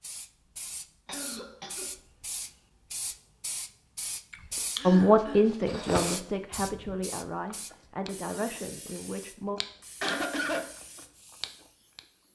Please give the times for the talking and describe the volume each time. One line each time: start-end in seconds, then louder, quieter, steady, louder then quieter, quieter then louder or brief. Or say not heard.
4.8-9.6 quieter.